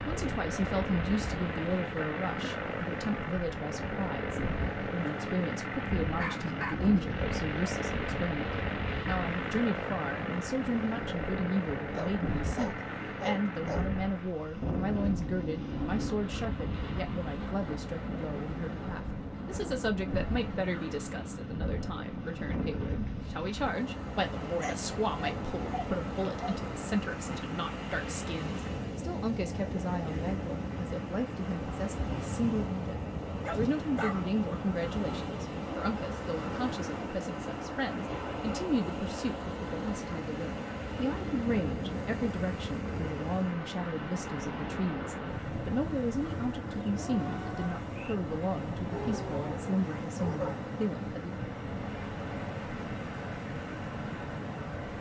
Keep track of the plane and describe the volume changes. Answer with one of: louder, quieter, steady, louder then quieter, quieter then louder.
quieter.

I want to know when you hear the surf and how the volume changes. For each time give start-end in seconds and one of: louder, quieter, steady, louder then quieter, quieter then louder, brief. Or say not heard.
0.0-54.9 steady.